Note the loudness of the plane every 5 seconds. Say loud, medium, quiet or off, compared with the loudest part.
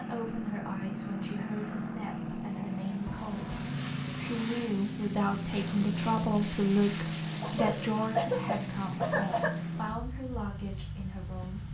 loud, loud, medium.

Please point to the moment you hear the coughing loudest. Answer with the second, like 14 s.
8 s.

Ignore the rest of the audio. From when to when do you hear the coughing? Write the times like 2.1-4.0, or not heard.
3.0-3.6, 7.4-9.5.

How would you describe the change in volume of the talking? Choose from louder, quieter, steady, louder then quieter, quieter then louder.
louder then quieter.